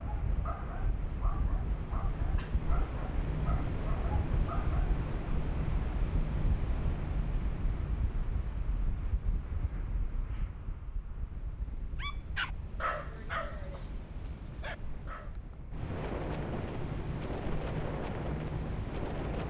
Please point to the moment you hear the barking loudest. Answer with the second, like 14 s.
13 s.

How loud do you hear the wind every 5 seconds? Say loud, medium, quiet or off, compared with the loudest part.
loud, loud, medium, loud.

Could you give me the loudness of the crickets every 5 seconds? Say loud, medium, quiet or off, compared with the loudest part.
loud, loud, medium, loud.